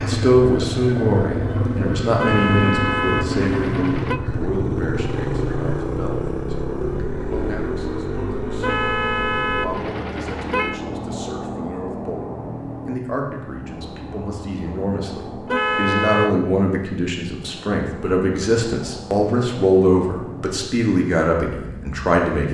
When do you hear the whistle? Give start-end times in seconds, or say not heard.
not heard.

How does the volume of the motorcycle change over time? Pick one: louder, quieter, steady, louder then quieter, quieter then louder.
quieter.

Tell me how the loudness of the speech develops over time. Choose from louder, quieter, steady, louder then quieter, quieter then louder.
quieter then louder.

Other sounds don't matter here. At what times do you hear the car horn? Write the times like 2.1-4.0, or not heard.
2.1-4.2, 8.6-10.8, 15.4-16.4.